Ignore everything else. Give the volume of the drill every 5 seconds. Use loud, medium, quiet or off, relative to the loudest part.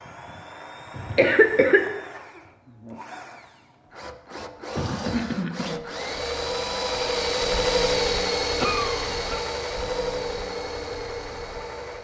quiet, loud, medium.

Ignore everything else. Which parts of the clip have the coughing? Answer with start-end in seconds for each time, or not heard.
0.9-1.9, 4.8-5.8, 8.6-9.2.